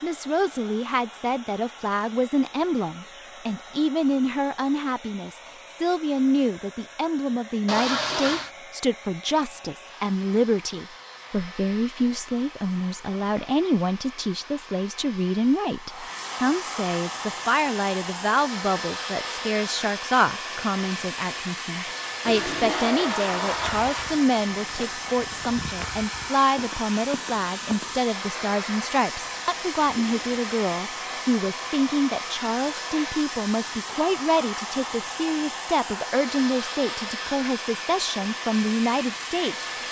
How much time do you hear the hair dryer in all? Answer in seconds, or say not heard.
40 s.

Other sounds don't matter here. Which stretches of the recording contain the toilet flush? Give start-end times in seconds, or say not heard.
7.7-8.5, 22.2-24.2, 29.2-30.4.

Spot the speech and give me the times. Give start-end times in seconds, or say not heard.
0.0-39.6.